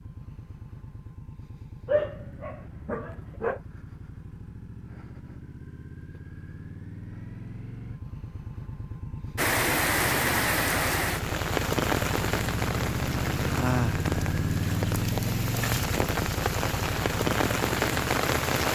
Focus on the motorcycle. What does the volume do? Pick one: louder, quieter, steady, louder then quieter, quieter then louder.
louder.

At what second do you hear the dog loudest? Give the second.
2 s.